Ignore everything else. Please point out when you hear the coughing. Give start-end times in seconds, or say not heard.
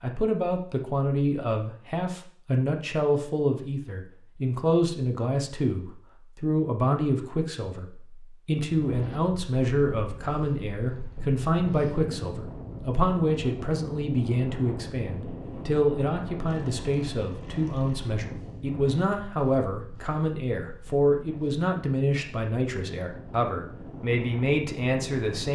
not heard.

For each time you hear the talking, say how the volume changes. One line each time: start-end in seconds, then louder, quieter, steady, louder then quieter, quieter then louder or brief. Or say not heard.
0.0-25.5 steady.